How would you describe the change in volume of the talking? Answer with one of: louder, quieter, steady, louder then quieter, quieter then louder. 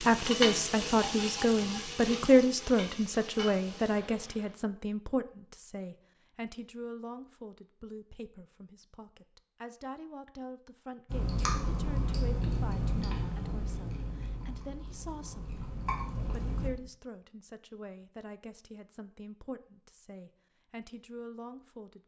quieter.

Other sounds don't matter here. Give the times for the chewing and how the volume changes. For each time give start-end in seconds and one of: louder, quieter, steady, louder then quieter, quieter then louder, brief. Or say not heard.
11.1-16.7 quieter then louder.